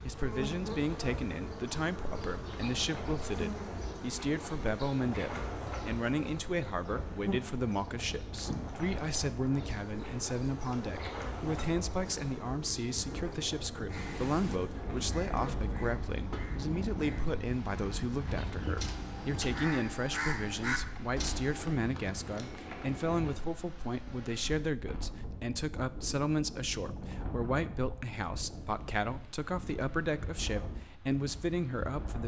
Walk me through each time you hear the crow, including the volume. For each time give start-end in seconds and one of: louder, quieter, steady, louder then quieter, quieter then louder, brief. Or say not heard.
13.9-21.8 louder.